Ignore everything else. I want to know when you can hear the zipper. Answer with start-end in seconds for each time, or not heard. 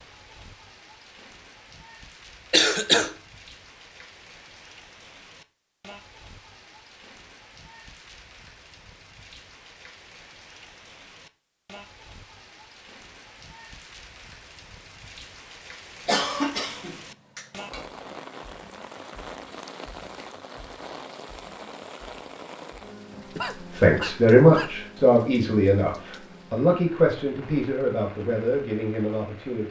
not heard.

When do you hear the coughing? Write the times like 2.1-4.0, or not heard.
2.5-3.1, 16.1-17.9, 23.1-24.7.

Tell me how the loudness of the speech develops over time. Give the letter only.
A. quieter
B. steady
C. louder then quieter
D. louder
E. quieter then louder
A.